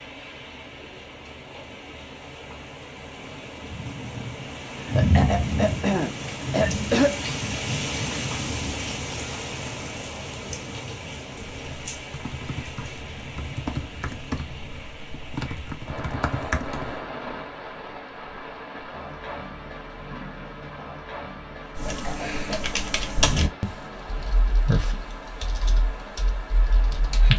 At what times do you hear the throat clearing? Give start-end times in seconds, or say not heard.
4.8-7.2, 21.6-22.8.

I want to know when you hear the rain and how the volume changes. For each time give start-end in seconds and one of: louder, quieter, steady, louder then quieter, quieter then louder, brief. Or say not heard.
0.0-27.3 quieter.